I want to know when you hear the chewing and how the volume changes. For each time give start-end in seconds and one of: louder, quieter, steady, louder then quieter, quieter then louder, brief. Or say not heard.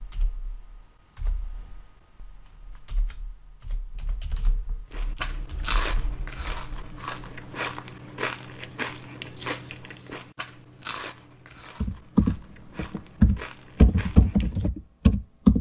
4.9-14.7 quieter.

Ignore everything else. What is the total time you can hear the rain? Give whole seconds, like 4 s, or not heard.
not heard.